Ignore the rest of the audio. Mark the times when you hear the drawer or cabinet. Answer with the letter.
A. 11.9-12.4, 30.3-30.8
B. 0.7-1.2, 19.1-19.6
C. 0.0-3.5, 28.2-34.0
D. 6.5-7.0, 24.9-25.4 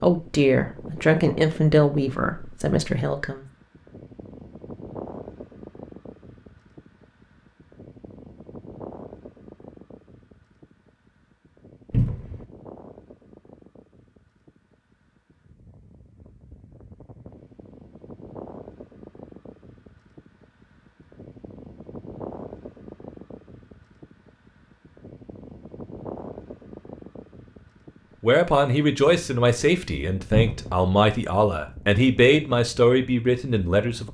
A.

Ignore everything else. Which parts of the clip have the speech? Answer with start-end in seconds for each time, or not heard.
0.0-3.5, 28.2-34.0.